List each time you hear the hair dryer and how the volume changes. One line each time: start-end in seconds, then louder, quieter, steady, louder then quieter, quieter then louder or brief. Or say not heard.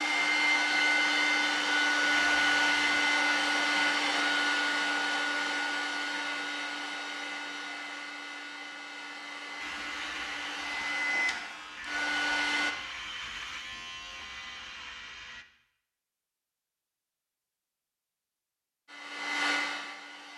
0.0-12.8 quieter then louder
18.9-20.3 brief.